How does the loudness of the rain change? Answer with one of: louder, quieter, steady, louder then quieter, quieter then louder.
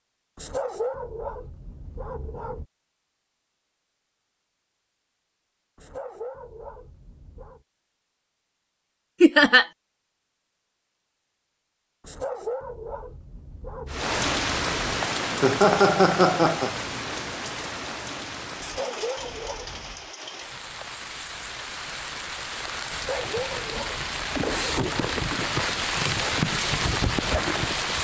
quieter then louder.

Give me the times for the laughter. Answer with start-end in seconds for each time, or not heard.
9.2-9.7, 15.4-16.7.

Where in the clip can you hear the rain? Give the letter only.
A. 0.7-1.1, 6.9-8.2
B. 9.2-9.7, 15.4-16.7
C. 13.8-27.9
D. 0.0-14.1
C.